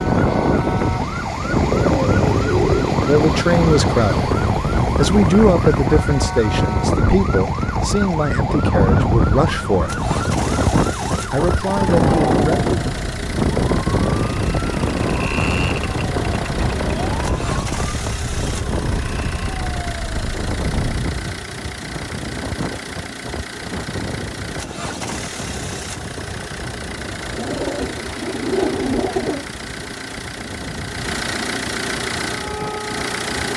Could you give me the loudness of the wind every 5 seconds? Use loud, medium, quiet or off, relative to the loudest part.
loud, loud, loud, medium, medium, quiet, quiet.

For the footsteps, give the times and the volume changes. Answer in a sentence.
The footsteps can't be heard in this clip.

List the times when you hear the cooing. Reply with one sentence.
You can hear the cooing from 1.6 to 3.0 s and from 27.4 to 29.4 s.